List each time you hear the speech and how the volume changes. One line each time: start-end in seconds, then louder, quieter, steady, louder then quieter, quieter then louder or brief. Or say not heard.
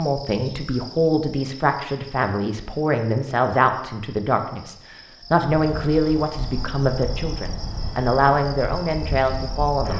0.0-9.9 steady.